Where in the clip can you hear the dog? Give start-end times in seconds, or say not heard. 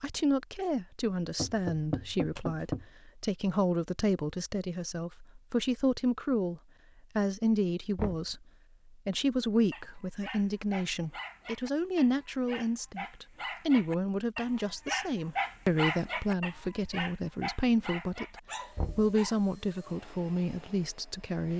9.7-19.4.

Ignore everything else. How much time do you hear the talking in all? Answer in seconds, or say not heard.
20 s.